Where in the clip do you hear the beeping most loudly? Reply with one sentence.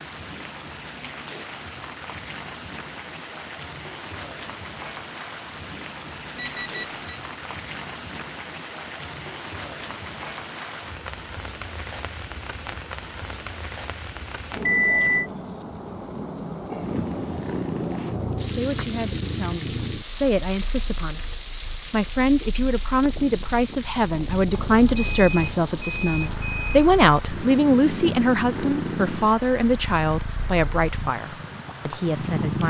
The volume of the beeping peaks at 15 seconds.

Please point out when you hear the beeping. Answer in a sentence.
You can hear the beeping from 6.3 to 7.2 s, from 14.7 to 15.3 s and from 24.5 to 26.9 s.